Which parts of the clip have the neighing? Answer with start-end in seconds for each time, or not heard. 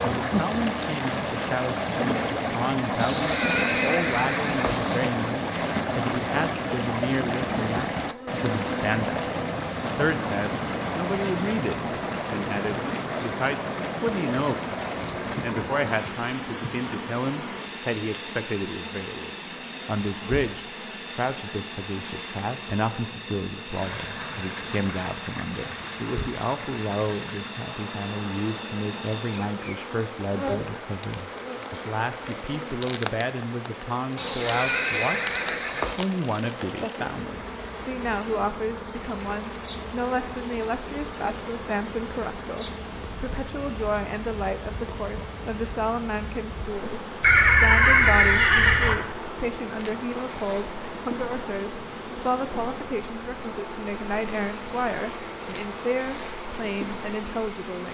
3.0-5.0, 34.1-36.0, 47.2-49.0.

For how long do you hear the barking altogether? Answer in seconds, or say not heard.
not heard.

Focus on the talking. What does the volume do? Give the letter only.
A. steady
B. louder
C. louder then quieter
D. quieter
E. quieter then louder
A.